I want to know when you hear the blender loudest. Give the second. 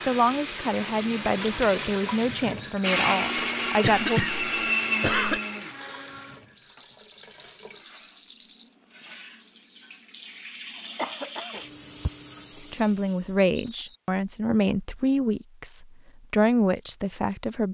3 s.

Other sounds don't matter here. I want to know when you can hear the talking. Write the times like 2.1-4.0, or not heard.
0.1-4.2, 12.6-17.6.